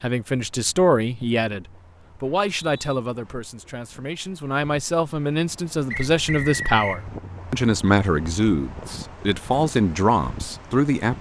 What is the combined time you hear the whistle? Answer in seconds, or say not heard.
2 s.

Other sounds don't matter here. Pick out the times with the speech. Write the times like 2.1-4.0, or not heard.
0.0-11.1.